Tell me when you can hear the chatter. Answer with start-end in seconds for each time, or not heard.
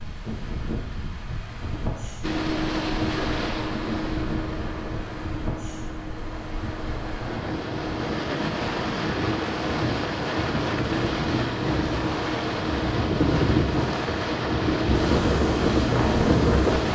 not heard.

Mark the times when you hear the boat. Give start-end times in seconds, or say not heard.
2.2-16.8.